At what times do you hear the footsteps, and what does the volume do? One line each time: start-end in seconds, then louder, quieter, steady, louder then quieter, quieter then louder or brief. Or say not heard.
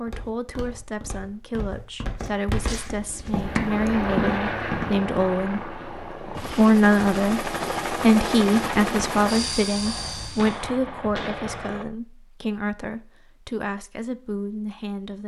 0.1-5.0 louder.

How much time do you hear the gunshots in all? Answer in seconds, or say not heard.
2 s.